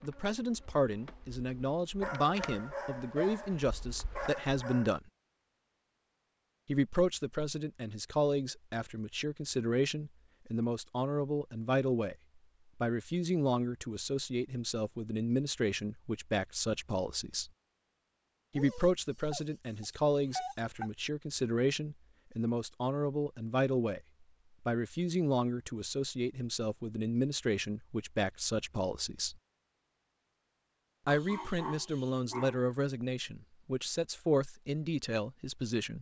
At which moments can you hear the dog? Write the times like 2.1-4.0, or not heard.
2.0-4.9, 18.5-20.9, 31.1-32.6.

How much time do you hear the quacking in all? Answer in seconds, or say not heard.
not heard.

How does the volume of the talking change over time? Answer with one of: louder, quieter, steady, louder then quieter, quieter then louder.
steady.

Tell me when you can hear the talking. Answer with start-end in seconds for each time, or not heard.
0.0-5.0, 6.7-12.2, 12.8-17.5, 18.6-24.0, 24.6-29.4, 31.1-35.9.